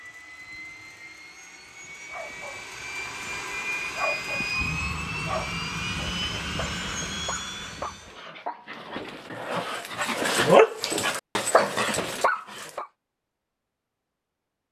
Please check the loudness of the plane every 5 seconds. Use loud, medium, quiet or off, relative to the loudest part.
loud, loud, off.